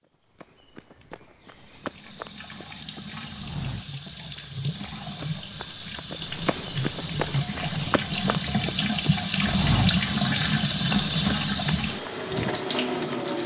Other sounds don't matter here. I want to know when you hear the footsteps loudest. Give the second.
10 s.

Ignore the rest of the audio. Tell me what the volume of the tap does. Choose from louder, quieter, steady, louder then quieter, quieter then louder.
louder.